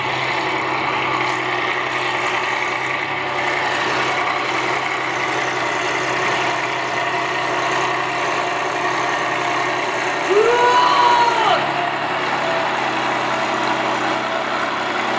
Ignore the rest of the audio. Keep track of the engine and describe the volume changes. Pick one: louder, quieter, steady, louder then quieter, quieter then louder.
steady.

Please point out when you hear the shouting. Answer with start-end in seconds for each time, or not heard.
10.2-11.7.